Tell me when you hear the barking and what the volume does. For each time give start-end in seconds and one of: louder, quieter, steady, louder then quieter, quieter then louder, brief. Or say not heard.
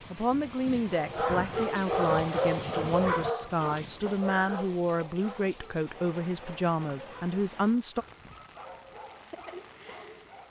0.8-10.4 quieter.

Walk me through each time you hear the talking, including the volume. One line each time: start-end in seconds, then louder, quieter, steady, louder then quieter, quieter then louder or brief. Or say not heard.
0.1-8.1 steady.